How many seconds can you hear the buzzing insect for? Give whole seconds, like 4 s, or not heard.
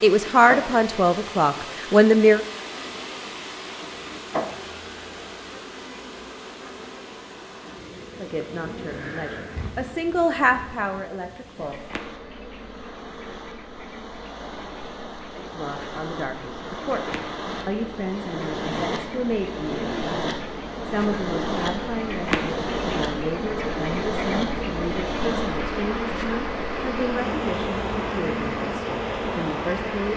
30 s.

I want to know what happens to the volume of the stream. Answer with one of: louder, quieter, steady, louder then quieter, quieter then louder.
quieter then louder.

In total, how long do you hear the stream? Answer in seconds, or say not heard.
30 s.